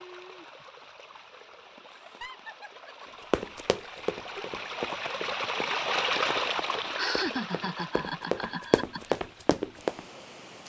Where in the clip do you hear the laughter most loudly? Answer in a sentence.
The loudest moment of the laughter is at 7 seconds.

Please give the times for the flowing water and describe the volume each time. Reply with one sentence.
The flowing water can be heard from 0.0 to 10.6 s, getting louder then quieter.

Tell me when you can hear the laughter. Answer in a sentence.
You can hear the laughter from 2.0 to 3.2 s and from 7.0 to 9.2 s.